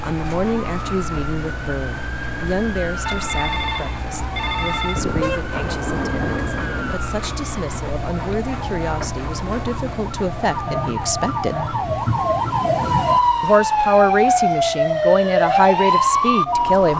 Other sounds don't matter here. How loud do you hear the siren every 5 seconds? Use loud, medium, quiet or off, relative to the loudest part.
quiet, quiet, loud, loud.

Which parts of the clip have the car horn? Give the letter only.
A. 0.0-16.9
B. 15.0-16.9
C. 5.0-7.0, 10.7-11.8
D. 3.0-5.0
C.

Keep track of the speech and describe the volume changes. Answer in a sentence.
The loudness of the speech goes down, then up.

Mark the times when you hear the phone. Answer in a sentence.
You can hear the phone from 3.0 to 5.0 s.